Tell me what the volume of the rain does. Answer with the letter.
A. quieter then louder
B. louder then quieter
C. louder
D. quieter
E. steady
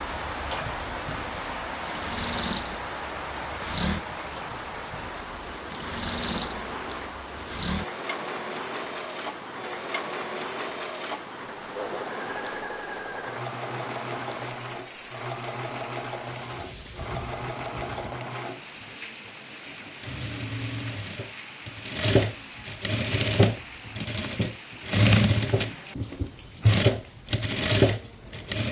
D.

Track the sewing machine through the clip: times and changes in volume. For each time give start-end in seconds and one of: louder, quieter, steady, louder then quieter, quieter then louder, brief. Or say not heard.
0.2-28.6 louder.